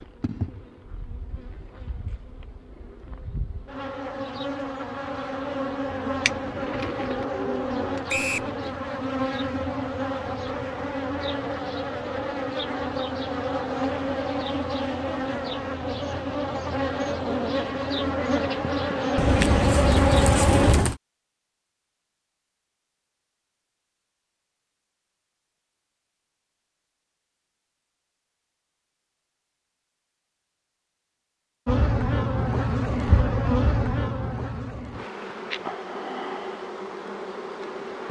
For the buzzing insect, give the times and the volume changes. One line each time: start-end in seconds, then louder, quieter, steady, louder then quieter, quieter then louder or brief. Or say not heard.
0.0-20.8 louder
31.6-38.0 quieter.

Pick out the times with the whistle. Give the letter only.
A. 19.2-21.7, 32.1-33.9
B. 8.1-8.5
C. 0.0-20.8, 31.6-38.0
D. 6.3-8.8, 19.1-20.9
B.